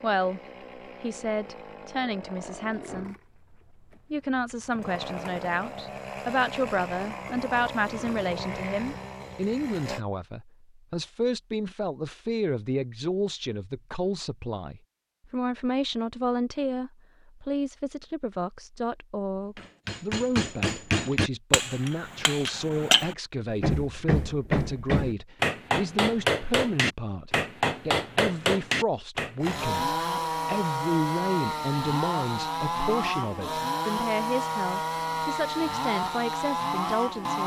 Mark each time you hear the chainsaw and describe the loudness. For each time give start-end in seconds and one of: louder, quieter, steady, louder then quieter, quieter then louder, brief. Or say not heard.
0.0-10.0 louder
29.4-37.4 steady.